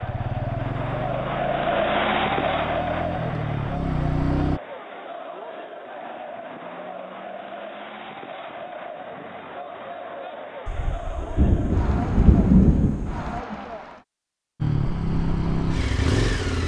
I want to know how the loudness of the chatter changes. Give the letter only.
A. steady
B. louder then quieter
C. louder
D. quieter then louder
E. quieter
E.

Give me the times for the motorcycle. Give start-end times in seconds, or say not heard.
0.0-4.6, 14.6-16.6.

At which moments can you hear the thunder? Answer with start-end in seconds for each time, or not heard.
10.7-13.4.